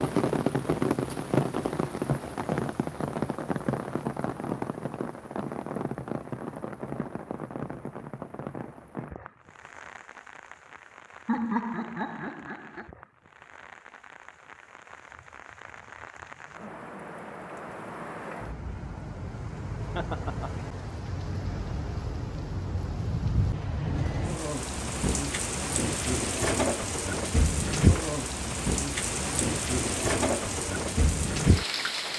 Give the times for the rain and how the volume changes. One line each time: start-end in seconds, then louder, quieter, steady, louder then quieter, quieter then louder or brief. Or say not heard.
0.0-32.1 quieter then louder.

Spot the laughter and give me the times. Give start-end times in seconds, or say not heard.
11.2-12.9, 19.9-20.6.